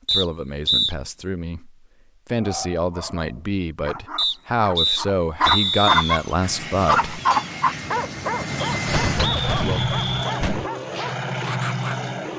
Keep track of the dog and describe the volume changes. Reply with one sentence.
The loudness of the dog goes up, then down.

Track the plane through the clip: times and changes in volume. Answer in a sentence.
You can hear the plane from 6.3 to 12.3 s, getting louder.